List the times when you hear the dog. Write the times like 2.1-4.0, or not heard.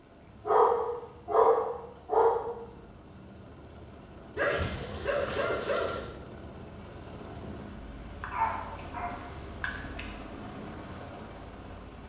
0.5-2.4, 4.3-6.0, 8.2-10.1.